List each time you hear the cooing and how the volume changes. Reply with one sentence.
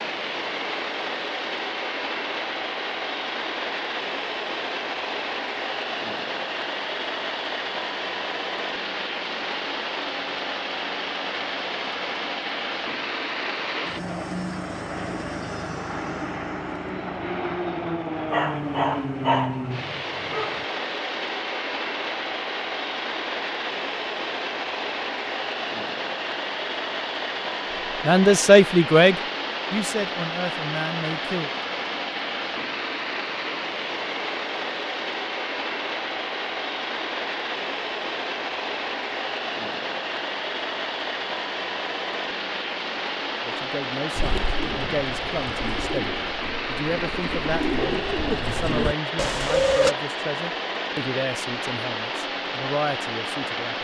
You can hear the cooing from 44.1 to 50.0 s, getting louder.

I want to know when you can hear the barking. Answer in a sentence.
The barking can be heard from 18.3 to 20.6 s.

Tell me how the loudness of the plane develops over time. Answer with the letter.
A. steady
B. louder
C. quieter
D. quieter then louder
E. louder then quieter
A.